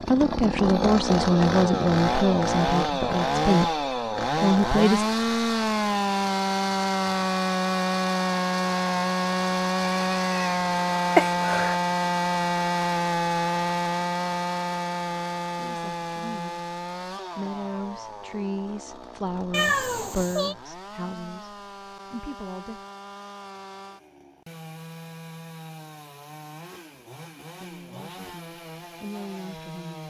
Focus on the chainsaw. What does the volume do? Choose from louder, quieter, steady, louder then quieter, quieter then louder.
quieter.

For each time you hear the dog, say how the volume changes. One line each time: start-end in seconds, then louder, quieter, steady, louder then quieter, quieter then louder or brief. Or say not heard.
not heard.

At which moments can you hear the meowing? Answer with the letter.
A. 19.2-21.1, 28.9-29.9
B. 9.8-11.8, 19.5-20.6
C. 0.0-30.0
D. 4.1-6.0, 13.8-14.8
B.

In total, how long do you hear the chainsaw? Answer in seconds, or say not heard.
30 s.